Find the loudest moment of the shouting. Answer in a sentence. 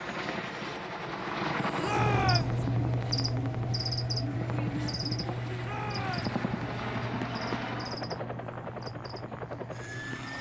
The volume of the shouting peaks at 2 seconds.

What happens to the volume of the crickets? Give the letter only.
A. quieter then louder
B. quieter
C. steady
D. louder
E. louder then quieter
B.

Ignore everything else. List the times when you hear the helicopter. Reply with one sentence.
You can hear the helicopter from 0.0 to 10.3 s.